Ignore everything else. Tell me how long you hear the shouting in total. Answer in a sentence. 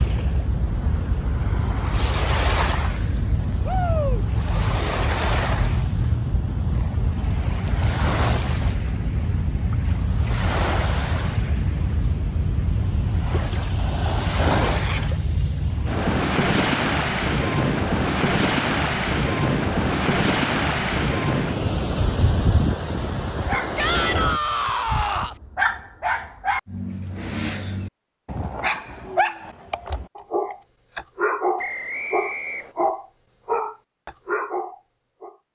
The shouting can be heard for 3 seconds in total.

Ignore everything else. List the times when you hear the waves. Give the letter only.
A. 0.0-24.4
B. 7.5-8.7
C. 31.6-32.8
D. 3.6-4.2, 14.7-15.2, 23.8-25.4
A.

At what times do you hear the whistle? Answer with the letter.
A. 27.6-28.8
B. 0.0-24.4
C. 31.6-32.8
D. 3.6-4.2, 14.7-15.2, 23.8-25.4
C.